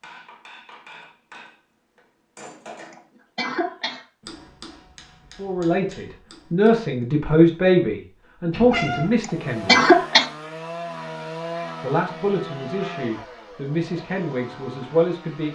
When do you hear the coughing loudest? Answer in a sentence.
The loudest moment of the coughing is at 10 seconds.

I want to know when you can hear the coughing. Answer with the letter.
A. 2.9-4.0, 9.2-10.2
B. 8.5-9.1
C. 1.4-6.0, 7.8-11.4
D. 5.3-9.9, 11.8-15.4
A.